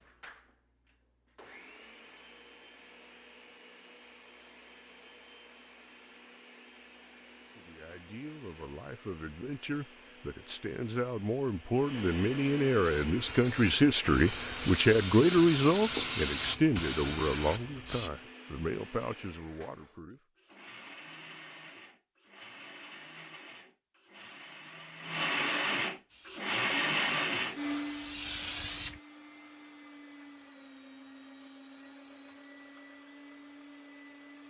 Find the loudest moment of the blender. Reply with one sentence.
The volume of the blender peaks at 27 seconds.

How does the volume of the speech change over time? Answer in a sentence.
The loudness of the speech goes up, then down.